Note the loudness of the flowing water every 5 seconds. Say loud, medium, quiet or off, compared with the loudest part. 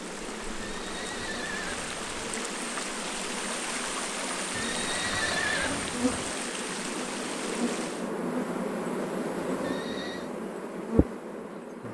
loud, loud, off.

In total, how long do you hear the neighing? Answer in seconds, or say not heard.
4 s.